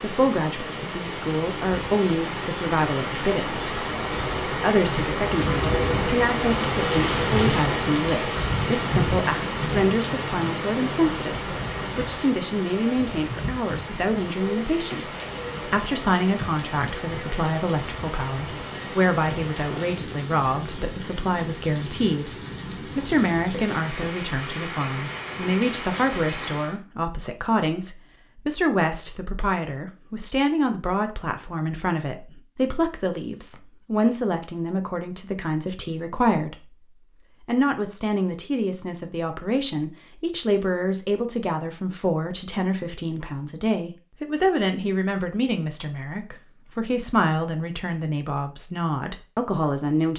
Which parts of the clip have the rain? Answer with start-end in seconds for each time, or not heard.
0.0-26.8.